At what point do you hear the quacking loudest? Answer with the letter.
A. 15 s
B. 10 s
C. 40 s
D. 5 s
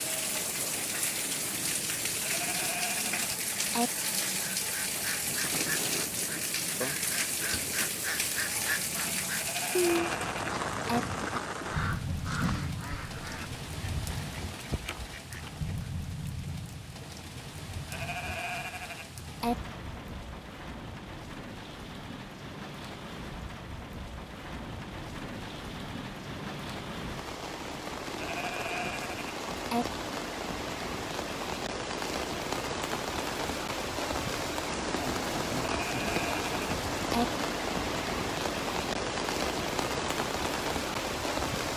B.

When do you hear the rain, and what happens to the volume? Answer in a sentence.
You can hear the rain from 0.0 to 41.7 s, getting quieter then louder.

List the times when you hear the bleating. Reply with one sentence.
You can hear the bleating from 2.2 to 3.9 s, from 9.3 to 11.0 s, from 17.9 to 19.6 s, from 28.1 to 29.9 s and from 35.8 to 37.2 s.